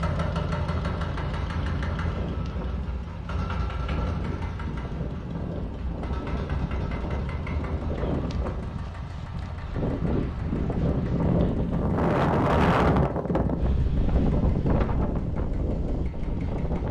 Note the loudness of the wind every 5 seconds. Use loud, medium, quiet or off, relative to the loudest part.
quiet, medium, loud, medium.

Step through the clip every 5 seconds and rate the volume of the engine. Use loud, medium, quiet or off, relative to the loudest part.
loud, medium, quiet, quiet.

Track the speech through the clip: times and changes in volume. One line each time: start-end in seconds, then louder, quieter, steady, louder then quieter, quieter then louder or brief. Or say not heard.
not heard.